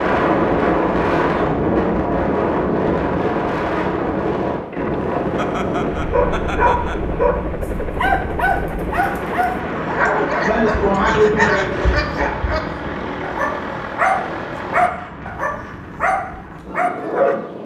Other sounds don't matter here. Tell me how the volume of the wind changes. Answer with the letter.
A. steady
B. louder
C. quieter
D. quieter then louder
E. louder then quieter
C.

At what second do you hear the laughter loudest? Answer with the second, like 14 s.
11 s.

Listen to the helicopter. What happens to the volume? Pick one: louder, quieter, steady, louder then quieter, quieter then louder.
steady.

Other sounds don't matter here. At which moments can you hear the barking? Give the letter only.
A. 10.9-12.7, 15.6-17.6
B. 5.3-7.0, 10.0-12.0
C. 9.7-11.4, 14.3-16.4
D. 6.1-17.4
D.